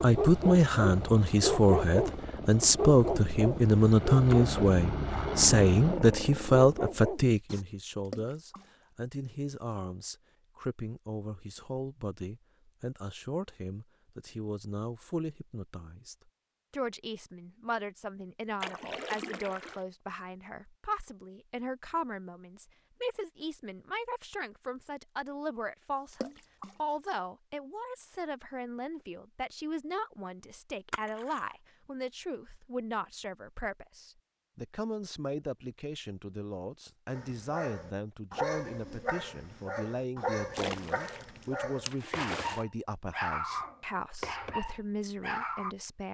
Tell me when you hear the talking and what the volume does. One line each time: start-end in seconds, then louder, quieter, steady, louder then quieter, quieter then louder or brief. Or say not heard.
0.0-46.0 quieter.